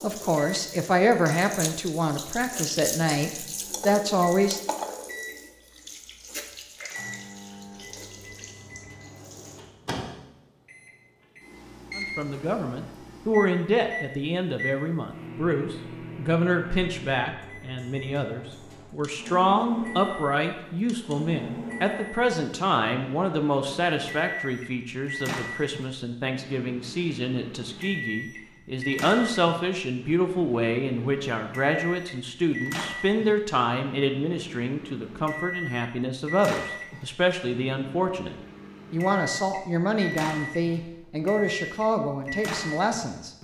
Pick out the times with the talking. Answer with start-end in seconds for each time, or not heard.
0.0-4.6, 11.9-43.3.